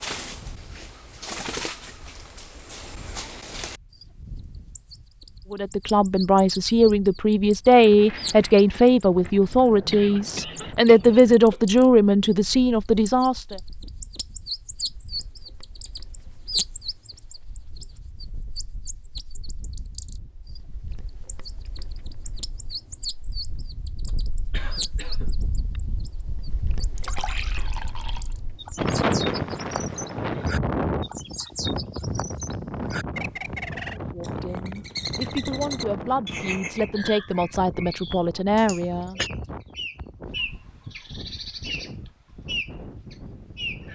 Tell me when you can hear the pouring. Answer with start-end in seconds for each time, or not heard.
26.9-28.2.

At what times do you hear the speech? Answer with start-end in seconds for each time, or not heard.
5.5-13.6, 34.0-39.2.